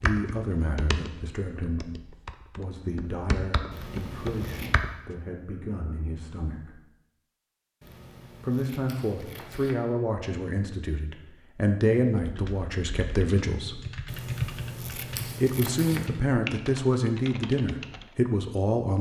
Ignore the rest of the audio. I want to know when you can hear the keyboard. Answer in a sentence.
The keyboard can be heard from 0.0 to 4.9 s and from 12.1 to 18.1 s.